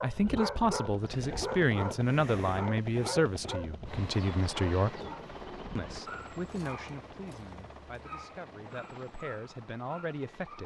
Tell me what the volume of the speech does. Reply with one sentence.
The volume of the speech goes down, then up.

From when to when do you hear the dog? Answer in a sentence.
You can hear the dog from 0.0 to 10.6 s.